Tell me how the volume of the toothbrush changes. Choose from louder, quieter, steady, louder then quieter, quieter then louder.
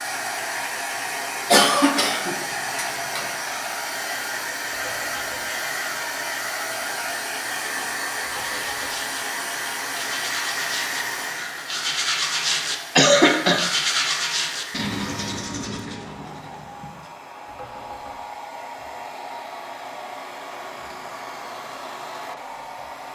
louder then quieter.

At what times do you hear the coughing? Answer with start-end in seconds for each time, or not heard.
1.5-3.2, 12.9-13.6.